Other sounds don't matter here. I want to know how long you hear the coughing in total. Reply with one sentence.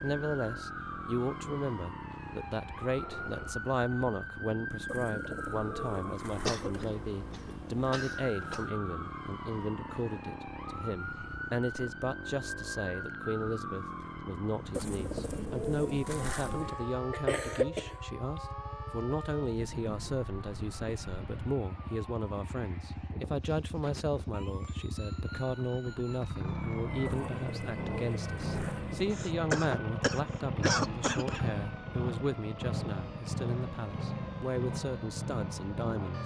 The coughing can be heard for 6 seconds in total.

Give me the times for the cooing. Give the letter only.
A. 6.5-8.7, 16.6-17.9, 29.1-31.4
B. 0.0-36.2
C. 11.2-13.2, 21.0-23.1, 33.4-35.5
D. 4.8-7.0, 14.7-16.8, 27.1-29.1
D.